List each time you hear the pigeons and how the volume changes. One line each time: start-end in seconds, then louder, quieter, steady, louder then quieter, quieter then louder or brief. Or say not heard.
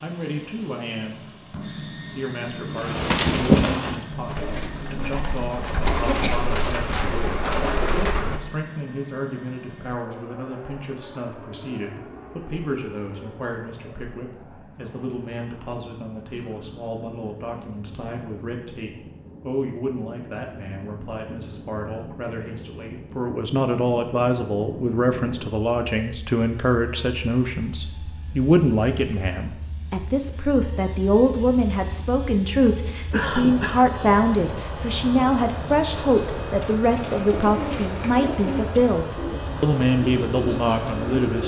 2.6-8.4 quieter then louder
36.6-41.4 quieter then louder.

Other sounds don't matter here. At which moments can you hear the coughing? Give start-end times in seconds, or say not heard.
5.8-6.5, 32.6-33.8.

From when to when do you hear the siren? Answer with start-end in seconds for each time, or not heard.
not heard.